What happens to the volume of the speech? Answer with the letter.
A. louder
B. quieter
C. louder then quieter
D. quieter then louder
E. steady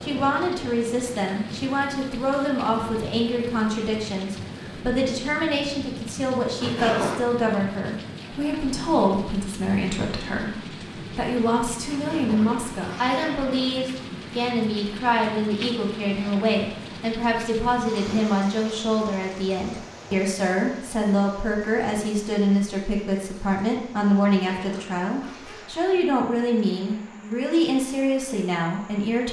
E.